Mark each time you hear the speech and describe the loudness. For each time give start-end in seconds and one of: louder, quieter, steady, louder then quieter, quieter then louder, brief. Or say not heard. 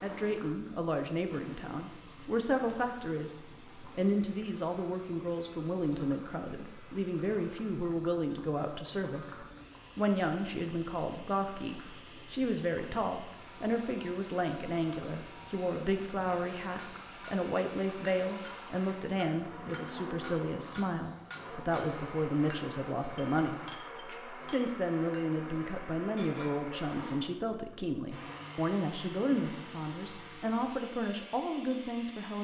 0.0-32.3 steady.